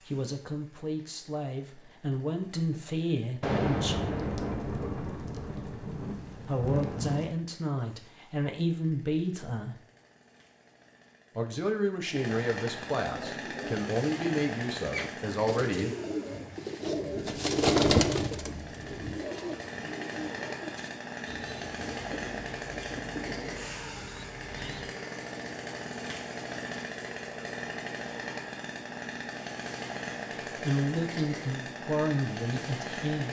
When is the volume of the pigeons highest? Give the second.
18 s.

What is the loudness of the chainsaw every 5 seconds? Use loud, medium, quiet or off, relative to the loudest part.
quiet, quiet, loud, medium, loud, loud, loud.